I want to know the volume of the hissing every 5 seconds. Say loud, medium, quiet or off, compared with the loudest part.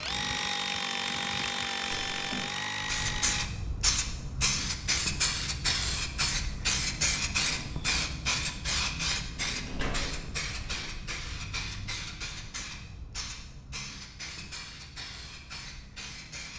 loud, loud, medium, quiet.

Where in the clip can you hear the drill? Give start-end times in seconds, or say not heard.
0.0-3.5.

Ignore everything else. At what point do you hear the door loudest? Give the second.
10 s.